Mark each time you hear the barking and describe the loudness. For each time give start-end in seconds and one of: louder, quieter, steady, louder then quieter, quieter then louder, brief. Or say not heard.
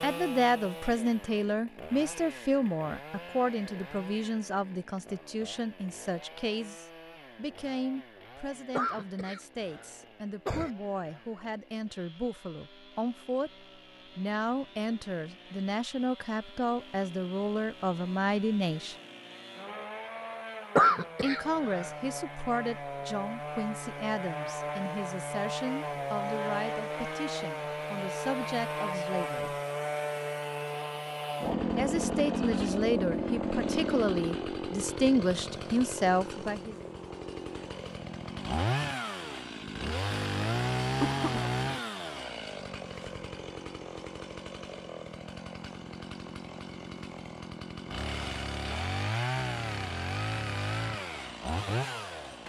not heard.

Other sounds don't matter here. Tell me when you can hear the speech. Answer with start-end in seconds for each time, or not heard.
0.0-18.9, 21.2-29.6, 31.8-36.8.